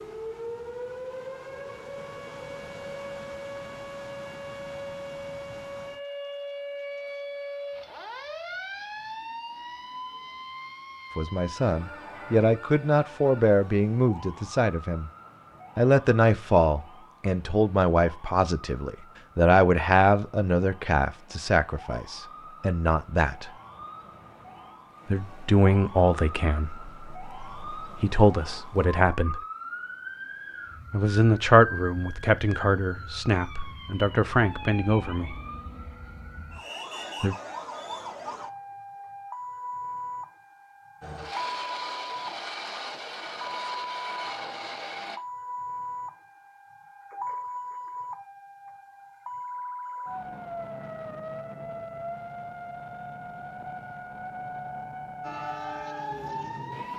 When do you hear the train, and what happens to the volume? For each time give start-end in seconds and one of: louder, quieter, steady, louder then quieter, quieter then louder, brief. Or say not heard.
41.0-45.2 steady
55.2-56.9 brief.